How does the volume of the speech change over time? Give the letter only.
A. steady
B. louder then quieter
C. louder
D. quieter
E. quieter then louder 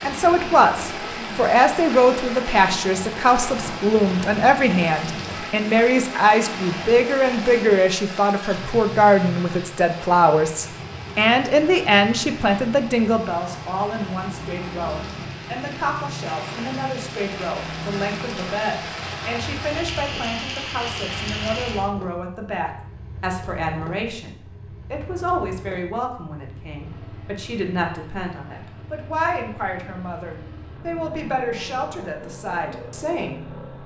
D.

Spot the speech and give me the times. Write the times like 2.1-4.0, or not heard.
0.0-33.5.